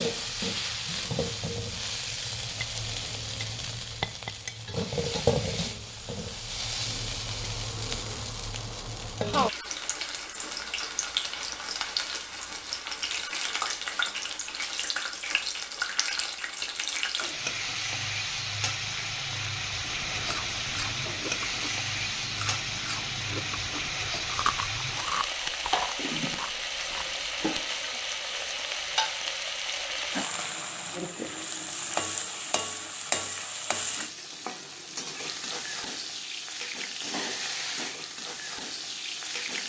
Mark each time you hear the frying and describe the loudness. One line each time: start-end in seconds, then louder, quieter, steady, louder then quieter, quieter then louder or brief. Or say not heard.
0.0-39.6 steady.